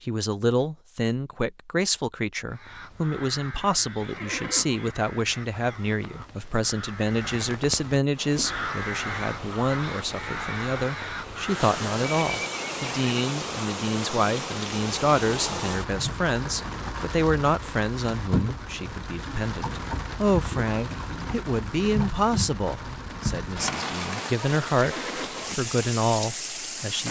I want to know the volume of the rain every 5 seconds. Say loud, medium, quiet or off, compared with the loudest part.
off, medium, loud, loud, loud, loud.